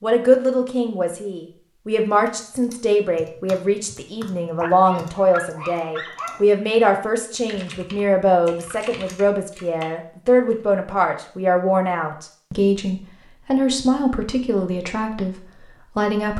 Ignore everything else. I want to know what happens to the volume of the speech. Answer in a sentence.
The loudness of the speech stays about the same.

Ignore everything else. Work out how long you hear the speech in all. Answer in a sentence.
The speech can be heard for 16 seconds in total.